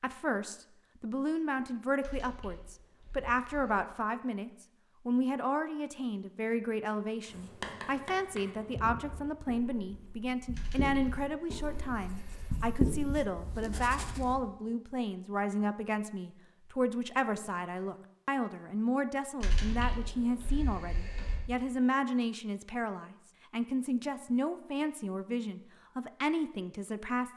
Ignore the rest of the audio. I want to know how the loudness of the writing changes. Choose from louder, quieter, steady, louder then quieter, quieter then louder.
quieter then louder.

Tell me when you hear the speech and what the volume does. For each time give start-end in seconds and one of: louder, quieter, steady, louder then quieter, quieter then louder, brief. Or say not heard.
0.0-27.3 steady.